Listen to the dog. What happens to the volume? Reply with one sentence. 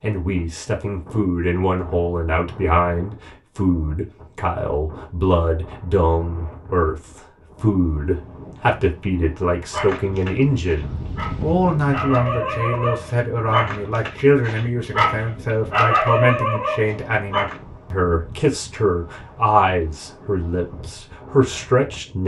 The volume of the dog goes up.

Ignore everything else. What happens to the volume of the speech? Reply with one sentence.
The volume of the speech stays about the same.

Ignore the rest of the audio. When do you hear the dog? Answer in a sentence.
The dog can be heard from 9.7 to 17.6 s.